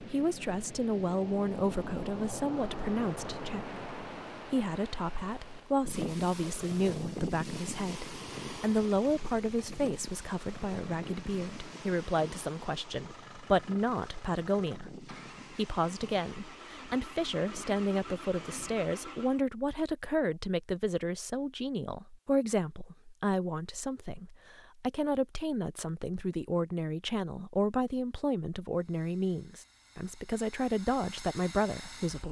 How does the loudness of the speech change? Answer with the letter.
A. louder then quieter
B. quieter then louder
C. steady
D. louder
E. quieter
C.